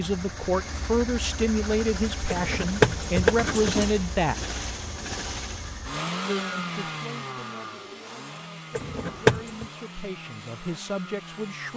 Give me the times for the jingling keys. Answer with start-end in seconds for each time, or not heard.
2.3-3.9, 8.8-9.7.